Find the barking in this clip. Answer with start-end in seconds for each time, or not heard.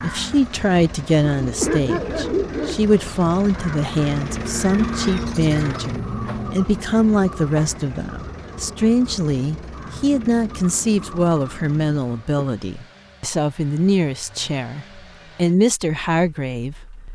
1.3-2.9.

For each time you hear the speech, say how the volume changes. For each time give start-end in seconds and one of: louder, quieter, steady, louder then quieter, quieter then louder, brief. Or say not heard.
0.0-16.8 steady.